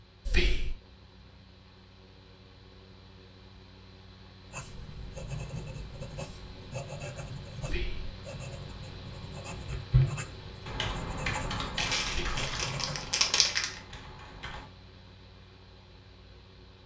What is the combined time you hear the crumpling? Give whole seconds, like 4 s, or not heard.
2 s.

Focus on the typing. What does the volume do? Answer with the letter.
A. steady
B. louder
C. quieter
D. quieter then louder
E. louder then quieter
C.